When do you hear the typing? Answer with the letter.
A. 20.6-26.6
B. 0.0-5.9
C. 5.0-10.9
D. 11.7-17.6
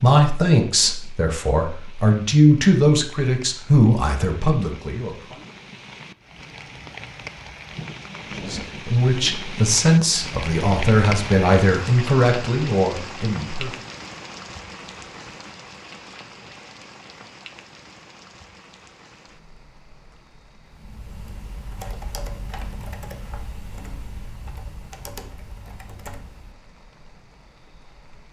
A.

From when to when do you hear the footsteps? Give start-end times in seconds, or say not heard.
not heard.